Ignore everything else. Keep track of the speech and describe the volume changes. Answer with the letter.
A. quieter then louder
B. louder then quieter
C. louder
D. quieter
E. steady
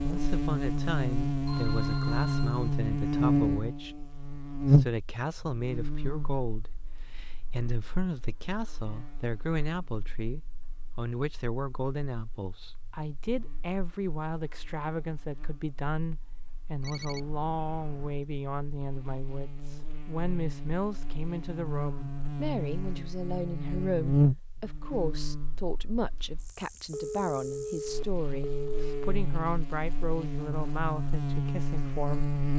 E.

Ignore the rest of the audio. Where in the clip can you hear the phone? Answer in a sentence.
You can hear the phone from 1.4 to 2.6 s, from 16.8 to 18.2 s and from 26.9 to 28.9 s.